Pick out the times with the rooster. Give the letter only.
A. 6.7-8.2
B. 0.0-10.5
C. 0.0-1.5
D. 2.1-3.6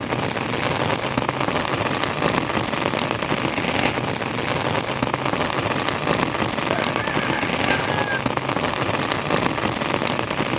A.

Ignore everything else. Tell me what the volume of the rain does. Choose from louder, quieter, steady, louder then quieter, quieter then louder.
steady.